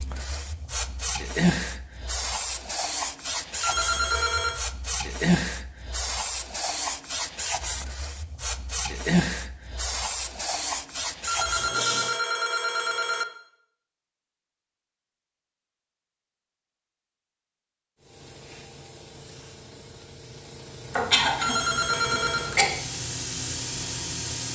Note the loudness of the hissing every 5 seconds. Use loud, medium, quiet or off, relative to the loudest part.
loud, loud, loud, quiet, medium.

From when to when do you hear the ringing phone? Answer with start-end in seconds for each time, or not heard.
3.6-4.6, 11.2-13.2, 21.4-22.6.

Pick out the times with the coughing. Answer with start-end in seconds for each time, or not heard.
20.9-22.6.